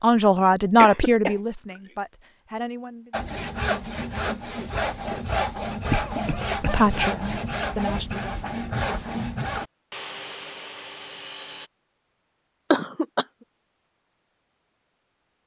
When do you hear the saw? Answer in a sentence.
You can hear the saw from 3.1 to 11.7 s.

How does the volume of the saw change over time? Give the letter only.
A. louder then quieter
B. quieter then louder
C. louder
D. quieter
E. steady
D.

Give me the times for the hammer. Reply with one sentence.
You can't hear the hammer here.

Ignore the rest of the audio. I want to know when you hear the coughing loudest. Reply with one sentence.
The volume of the coughing peaks at 13 seconds.